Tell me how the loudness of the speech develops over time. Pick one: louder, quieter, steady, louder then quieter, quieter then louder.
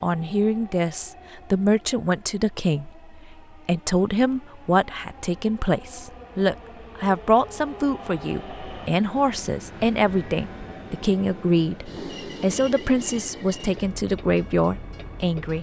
steady.